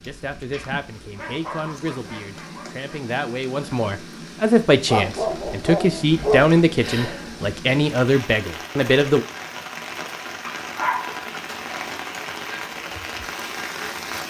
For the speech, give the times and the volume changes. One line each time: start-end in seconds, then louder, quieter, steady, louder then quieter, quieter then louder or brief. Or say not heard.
0.1-9.2 louder.